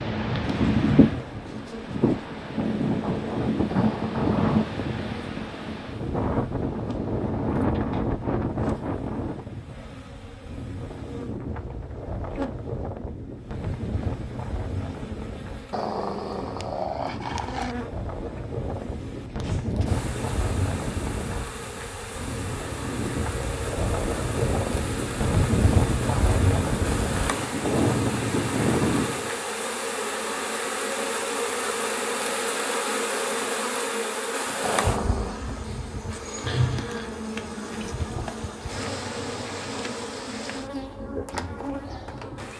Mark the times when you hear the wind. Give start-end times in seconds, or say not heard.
0.0-29.3.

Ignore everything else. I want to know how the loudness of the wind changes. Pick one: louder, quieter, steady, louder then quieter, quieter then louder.
quieter then louder.